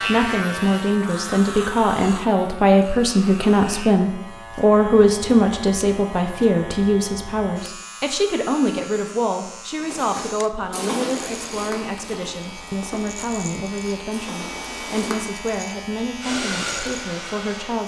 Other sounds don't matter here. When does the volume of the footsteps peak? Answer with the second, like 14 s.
11 s.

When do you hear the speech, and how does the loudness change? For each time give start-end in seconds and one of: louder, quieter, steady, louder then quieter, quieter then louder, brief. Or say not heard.
0.1-17.8 quieter.